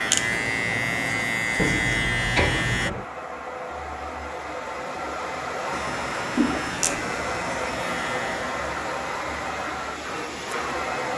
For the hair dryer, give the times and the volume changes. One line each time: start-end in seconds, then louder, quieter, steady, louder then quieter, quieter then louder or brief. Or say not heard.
0.0-11.1 louder.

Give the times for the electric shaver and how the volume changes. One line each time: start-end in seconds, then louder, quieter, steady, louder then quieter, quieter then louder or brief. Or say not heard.
0.0-2.9 brief
5.7-11.1 quieter.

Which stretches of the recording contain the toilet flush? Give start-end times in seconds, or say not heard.
1.6-3.0, 6.3-6.8.